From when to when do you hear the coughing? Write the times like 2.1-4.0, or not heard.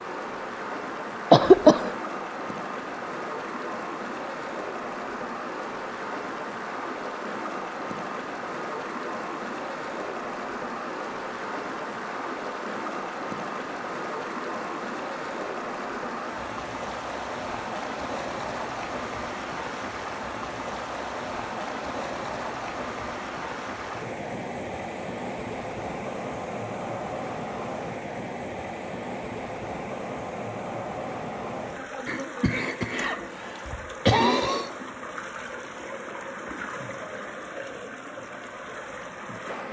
1.3-1.9, 32.0-34.7.